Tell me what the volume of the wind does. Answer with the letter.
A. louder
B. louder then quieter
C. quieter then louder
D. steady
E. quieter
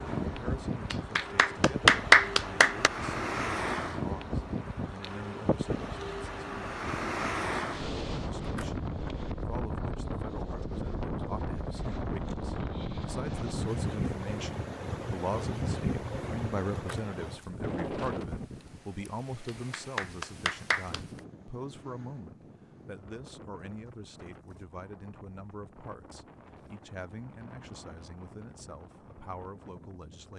E.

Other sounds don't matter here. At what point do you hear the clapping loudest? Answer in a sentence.
The loudest moment of the clapping is at 2 seconds.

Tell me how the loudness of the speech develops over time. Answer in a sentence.
The loudness of the speech goes up, then down.